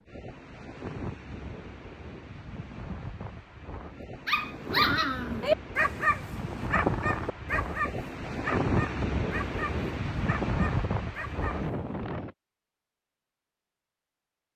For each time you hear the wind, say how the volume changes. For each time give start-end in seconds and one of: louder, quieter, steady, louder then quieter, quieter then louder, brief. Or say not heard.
0.0-12.3 louder.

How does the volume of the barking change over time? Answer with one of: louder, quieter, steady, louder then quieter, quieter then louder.
quieter.